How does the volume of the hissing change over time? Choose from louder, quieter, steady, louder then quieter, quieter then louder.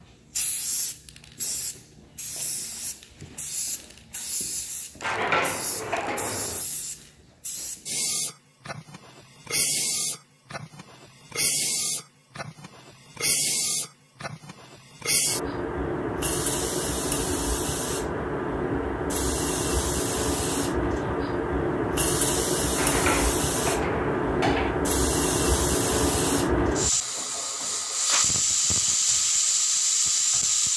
louder.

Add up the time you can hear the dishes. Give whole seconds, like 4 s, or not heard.
4 s.